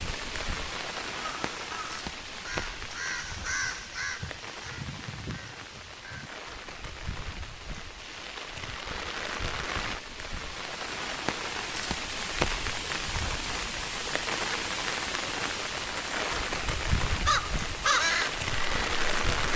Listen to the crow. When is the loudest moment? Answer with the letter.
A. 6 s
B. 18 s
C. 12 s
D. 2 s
B.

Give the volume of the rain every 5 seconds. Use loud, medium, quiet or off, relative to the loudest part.
medium, medium, loud, loud.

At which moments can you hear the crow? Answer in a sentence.
You can hear the crow from 1.1 to 6.3 s and from 17.2 to 19.5 s.